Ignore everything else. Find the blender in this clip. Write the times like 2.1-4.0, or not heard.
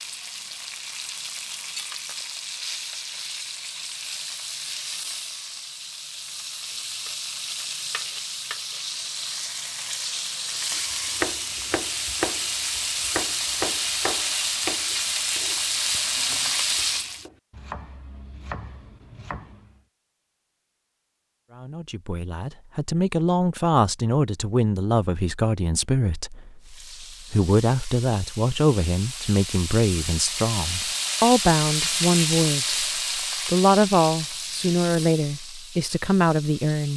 not heard.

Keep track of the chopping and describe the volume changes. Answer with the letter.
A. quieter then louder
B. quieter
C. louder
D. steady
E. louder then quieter
A.